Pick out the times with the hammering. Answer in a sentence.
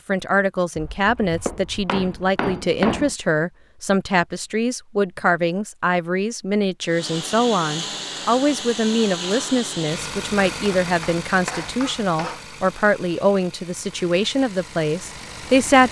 You can hear the hammering from 0.8 to 3.1 s and from 10.5 to 12.4 s.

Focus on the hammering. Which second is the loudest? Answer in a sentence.
The loudest moment of the hammering is at 3 seconds.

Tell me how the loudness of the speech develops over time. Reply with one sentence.
The loudness of the speech stays about the same.